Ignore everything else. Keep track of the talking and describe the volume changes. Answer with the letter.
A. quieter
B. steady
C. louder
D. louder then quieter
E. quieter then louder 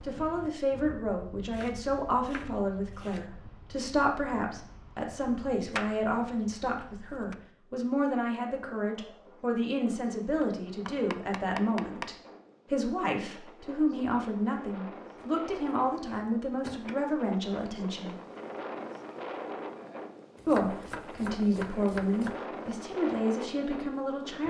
B.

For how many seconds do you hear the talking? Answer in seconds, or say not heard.
22 s.